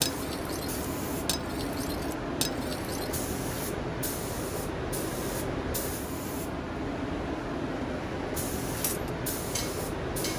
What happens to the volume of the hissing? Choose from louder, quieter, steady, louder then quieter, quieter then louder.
steady.